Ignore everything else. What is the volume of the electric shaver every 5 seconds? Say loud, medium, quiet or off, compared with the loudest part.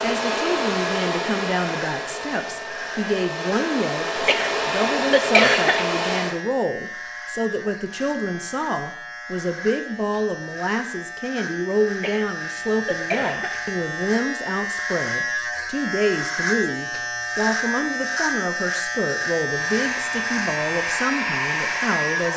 medium, medium, medium, loud, loud.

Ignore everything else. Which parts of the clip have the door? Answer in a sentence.
The door can't be heard in this clip.